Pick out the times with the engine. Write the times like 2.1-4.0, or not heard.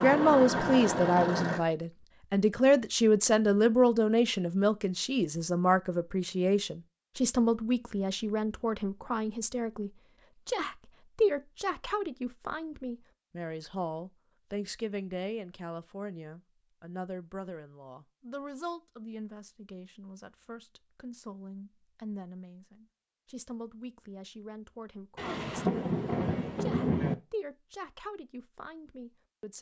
0.0-1.6.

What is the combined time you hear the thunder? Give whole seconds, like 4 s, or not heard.
2 s.